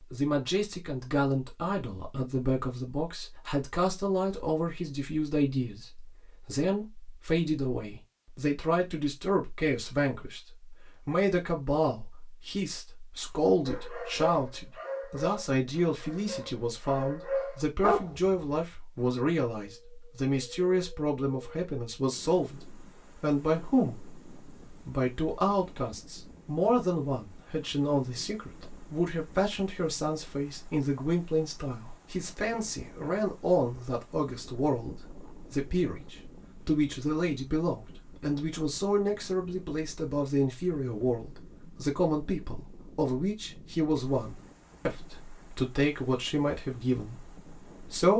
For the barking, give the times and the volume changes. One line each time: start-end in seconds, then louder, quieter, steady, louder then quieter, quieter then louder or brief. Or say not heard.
13.7-18.4 quieter then louder.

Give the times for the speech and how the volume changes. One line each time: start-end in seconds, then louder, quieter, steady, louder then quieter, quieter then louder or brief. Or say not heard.
0.1-48.1 steady.